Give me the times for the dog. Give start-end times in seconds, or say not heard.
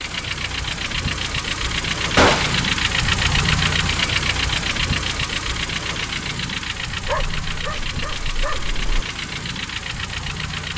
7.0-9.1.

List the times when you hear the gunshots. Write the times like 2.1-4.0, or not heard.
2.1-2.7.